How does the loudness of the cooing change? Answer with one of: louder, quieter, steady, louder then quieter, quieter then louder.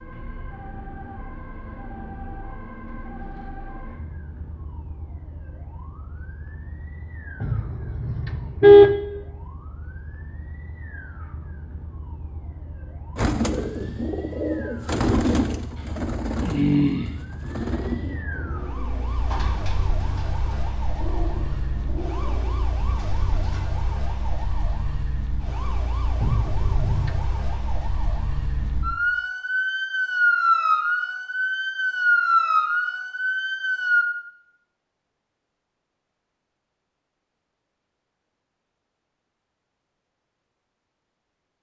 quieter.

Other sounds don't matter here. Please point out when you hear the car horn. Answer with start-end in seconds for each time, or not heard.
7.4-8.9, 26.2-27.2.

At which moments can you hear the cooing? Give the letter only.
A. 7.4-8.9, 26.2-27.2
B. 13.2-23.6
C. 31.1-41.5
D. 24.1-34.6
B.